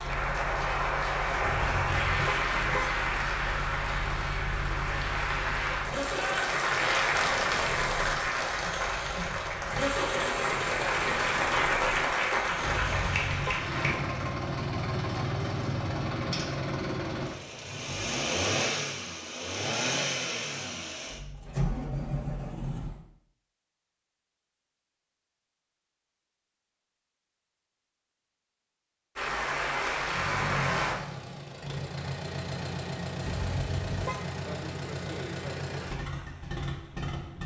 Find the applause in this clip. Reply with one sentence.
You can hear the applause from 0.0 to 13.9 s and from 29.1 to 30.9 s.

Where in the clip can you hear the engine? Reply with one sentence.
You can hear the engine from 0.0 to 23.0 s and from 29.9 to 37.4 s.